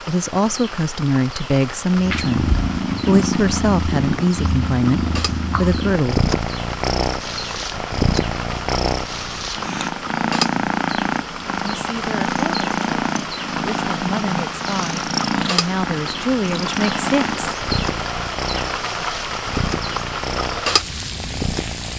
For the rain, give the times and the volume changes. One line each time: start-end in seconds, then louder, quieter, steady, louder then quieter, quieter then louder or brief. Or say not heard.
0.0-21.9 louder.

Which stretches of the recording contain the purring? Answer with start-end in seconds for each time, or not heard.
1.9-21.9.